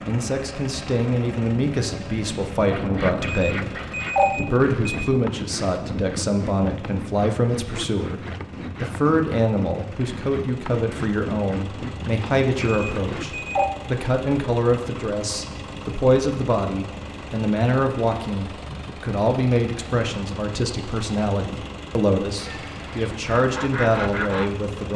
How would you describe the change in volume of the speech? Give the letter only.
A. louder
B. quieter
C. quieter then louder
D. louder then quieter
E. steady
E.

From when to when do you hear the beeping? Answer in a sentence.
The beeping can be heard from 3.2 to 5.1 s and from 12.6 to 13.7 s.